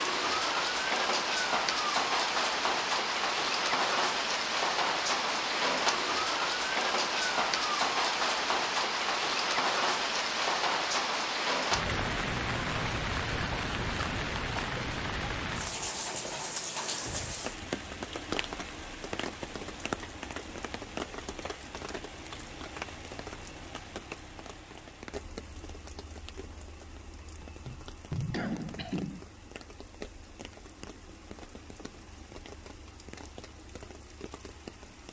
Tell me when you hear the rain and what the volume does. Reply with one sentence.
You can hear the rain from 0.0 to 35.0 s, getting quieter.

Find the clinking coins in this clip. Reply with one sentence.
The clinking coins can't be heard in this clip.